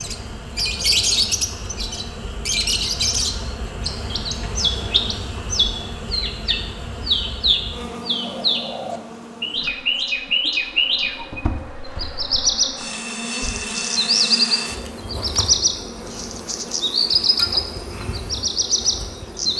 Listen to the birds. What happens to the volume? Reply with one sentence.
The loudness of the birds stays about the same.